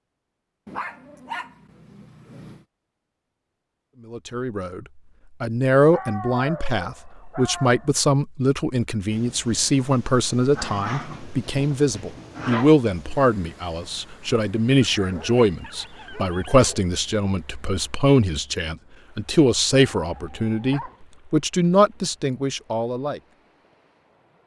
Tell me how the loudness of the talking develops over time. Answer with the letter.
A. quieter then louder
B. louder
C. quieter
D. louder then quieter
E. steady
E.